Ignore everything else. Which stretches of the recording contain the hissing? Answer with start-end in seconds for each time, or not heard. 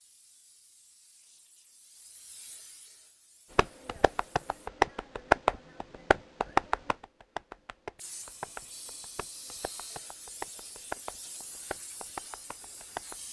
0.0-4.7, 8.0-13.2.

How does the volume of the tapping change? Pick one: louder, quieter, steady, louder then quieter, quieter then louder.
quieter.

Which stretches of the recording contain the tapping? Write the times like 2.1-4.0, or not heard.
3.5-13.2.